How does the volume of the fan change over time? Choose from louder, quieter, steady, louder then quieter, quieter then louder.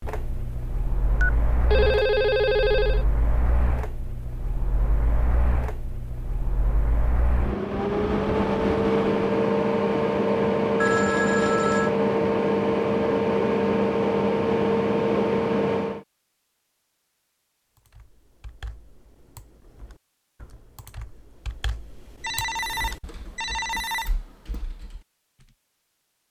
louder.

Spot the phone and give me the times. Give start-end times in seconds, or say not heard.
1.2-3.0, 10.8-11.9, 22.2-24.1.